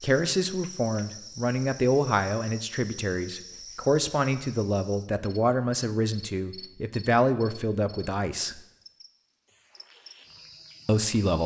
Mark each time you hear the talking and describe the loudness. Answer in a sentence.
You can hear the talking from 0.0 to 8.6 s, at a steady volume; and briefly from 10.8 to 11.4 s.